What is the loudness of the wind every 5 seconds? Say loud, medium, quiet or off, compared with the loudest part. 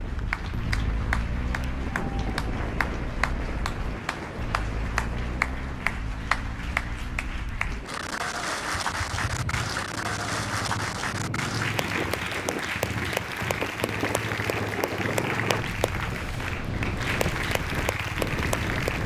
loud, medium, loud, loud.